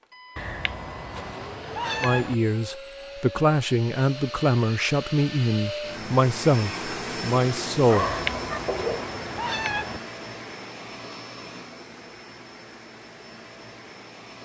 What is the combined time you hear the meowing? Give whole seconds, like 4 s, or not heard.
4 s.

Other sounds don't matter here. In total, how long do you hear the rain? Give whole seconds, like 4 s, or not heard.
not heard.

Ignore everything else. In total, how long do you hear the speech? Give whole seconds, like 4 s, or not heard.
6 s.